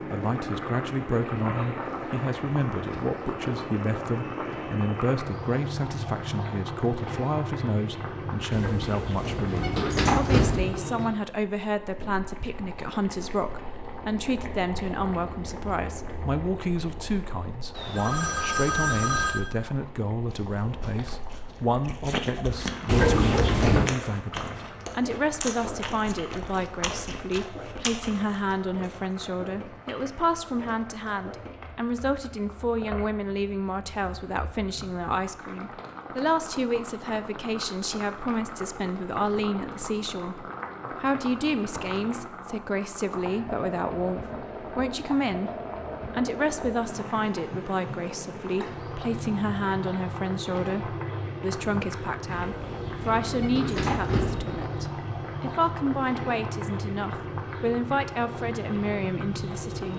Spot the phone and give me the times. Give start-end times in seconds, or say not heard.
17.7-19.4.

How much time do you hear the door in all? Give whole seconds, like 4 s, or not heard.
6 s.